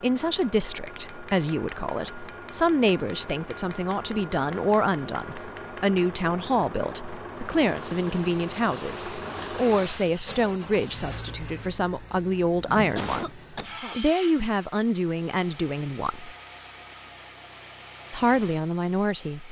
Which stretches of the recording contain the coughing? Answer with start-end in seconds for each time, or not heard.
12.9-13.9.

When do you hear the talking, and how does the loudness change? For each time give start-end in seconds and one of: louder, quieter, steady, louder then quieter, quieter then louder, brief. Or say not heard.
0.0-16.3 steady
18.1-19.4 brief.